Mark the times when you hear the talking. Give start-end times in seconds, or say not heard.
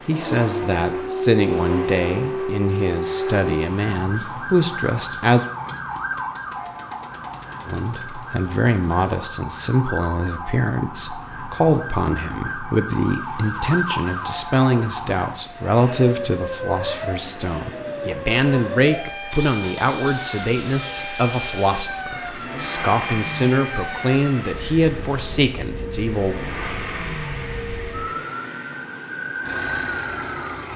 0.1-5.5, 7.7-26.4.